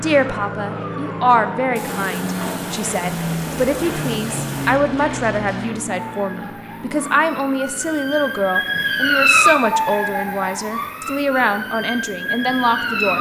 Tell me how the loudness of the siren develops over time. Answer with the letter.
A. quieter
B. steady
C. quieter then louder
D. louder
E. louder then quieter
E.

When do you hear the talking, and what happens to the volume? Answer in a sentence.
You can hear the talking from 0.0 to 13.1 s, at a steady volume.